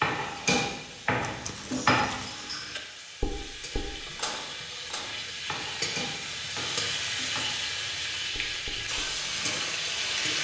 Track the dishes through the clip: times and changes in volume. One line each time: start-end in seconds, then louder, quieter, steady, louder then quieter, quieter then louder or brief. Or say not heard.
0.0-10.3 quieter.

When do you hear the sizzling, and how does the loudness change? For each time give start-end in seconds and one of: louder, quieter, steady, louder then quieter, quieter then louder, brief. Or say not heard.
0.0-10.4 louder.